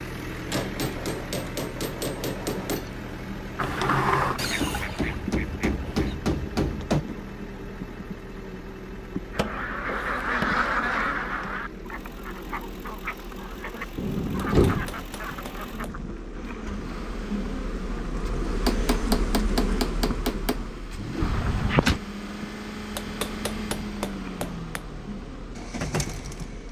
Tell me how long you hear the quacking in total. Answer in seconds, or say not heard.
9 s.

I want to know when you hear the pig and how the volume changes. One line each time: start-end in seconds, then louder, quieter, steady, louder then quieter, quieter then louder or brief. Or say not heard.
not heard.